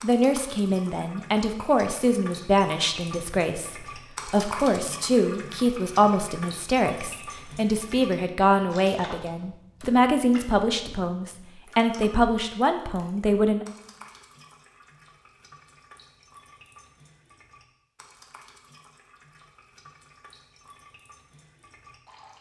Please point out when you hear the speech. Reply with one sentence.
You can hear the speech from 0.0 to 13.7 s.